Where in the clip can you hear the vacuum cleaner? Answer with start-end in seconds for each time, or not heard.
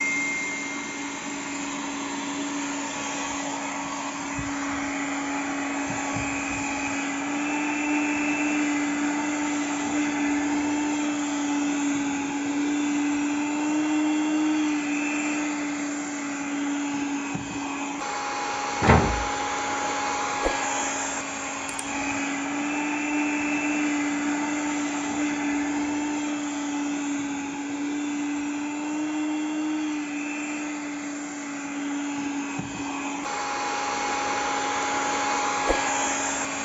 0.0-36.6.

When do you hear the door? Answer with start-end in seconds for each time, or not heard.
18.8-20.4.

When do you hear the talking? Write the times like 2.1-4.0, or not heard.
not heard.